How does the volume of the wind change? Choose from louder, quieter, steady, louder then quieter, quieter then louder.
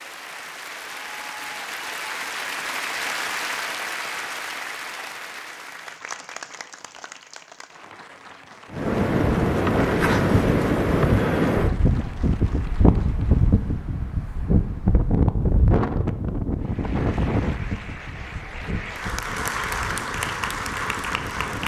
quieter.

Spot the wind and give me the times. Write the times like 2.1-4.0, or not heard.
8.7-21.6.